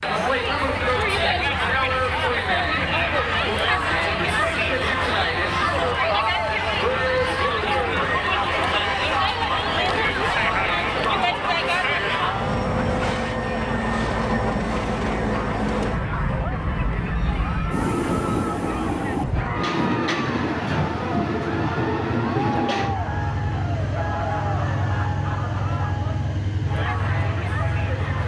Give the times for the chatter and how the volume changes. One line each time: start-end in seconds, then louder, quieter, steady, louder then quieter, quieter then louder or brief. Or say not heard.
0.0-28.2 quieter.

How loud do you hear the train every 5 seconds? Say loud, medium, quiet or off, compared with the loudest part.
quiet, medium, loud, loud, loud, loud.